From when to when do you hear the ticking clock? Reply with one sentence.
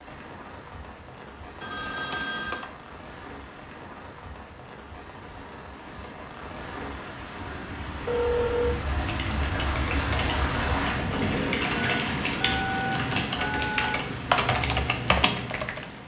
You can't hear the ticking clock here.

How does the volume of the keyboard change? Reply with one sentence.
The loudness of the keyboard goes up.